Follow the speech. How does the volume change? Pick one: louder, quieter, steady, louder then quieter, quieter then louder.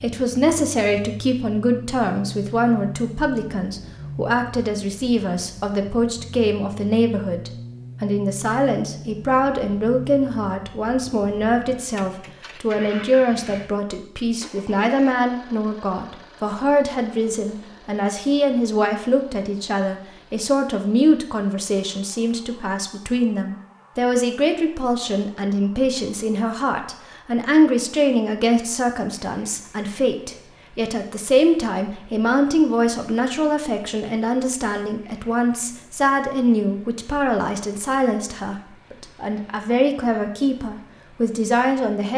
steady.